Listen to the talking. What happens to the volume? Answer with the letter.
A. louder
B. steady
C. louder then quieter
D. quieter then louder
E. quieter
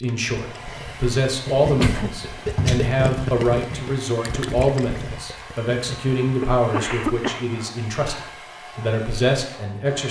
B.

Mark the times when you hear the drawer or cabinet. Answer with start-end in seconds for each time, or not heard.
1.6-3.0.